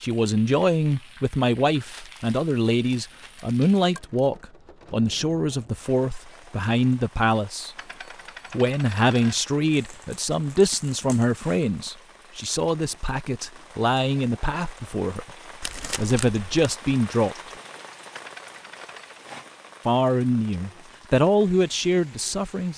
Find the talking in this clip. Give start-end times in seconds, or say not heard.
0.0-7.8, 8.5-15.2, 15.9-17.4, 19.9-22.7.